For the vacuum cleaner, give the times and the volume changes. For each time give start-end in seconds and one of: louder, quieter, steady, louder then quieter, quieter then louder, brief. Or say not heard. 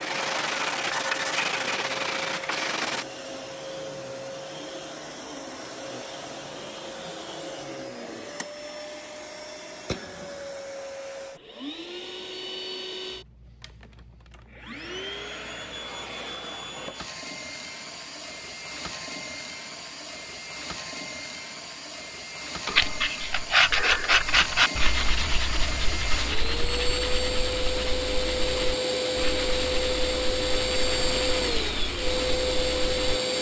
0.0-33.3 louder.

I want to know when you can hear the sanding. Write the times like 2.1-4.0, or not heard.
0.0-3.0, 22.6-33.2.